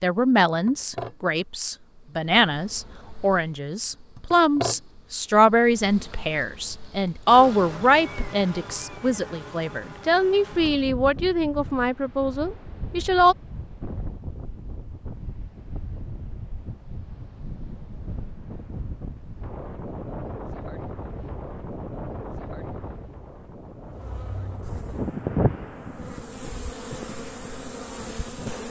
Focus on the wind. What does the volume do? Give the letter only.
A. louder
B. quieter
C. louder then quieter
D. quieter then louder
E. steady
A.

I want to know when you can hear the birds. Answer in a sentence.
You can't hear the birds here.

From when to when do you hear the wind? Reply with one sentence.
You can hear the wind from 10.5 to 28.6 s.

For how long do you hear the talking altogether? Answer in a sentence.
You can hear the talking for 13 seconds altogether.